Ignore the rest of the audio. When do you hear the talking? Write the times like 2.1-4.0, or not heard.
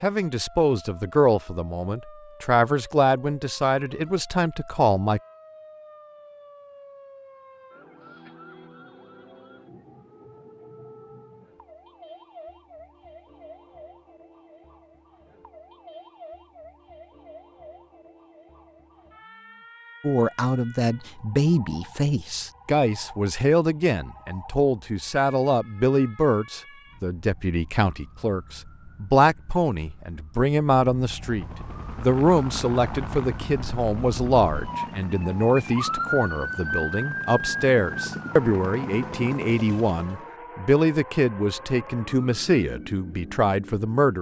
0.0-5.2, 20.0-44.1.